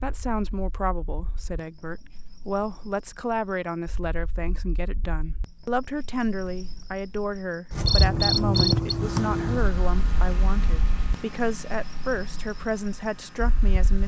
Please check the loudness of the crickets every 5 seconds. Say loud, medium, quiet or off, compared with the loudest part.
quiet, loud, quiet.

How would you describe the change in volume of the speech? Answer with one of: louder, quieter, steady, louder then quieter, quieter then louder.
steady.